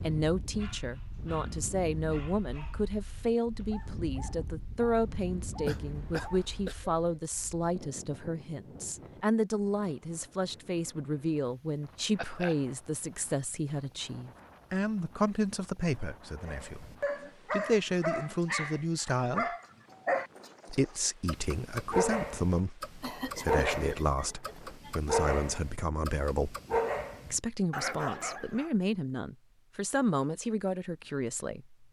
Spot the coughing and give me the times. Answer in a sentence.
The coughing can be heard from 5.7 to 6.8 s, from 12.2 to 12.6 s and from 23.0 to 24.9 s.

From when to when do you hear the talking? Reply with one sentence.
You can hear the talking from 0.0 to 16.9 s, from 17.5 to 19.5 s, from 20.6 to 26.6 s and from 27.3 to 31.8 s.